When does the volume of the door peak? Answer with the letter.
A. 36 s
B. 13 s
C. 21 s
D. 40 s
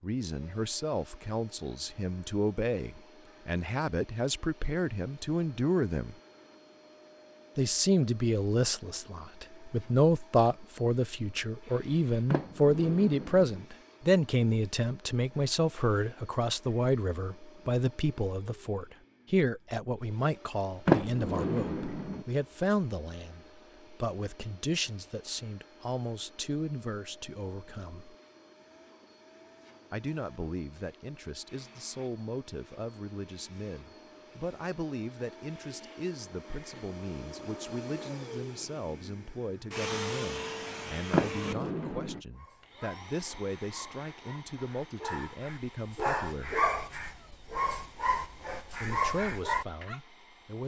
C.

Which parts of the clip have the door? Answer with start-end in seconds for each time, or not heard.
12.3-13.7, 20.9-22.2, 41.1-42.2.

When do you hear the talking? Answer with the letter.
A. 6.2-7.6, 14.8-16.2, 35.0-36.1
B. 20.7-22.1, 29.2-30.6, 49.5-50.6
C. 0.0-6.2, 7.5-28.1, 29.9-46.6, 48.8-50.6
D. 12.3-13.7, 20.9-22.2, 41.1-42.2
C.